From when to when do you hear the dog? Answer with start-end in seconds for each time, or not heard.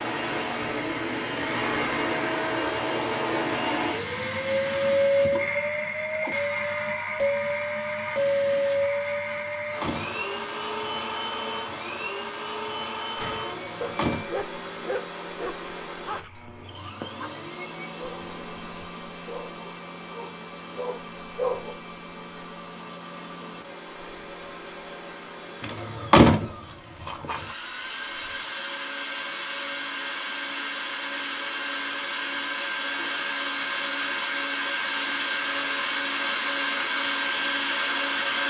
13.2-21.8.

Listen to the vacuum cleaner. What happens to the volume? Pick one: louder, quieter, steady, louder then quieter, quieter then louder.
quieter then louder.